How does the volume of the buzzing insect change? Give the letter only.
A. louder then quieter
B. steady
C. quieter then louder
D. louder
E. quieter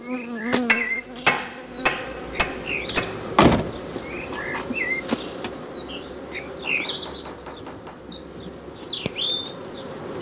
E.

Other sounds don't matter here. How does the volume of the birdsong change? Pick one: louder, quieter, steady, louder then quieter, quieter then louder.
louder.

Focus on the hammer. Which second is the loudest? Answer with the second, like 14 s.
1 s.